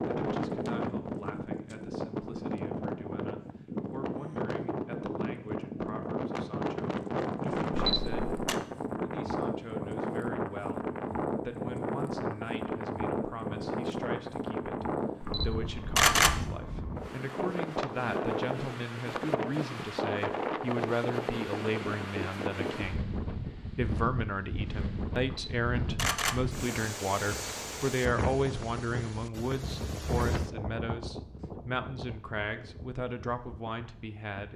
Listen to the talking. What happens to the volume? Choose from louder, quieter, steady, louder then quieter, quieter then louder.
louder.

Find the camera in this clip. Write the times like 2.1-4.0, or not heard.
7.7-8.6, 15.2-16.5, 25.2-26.5.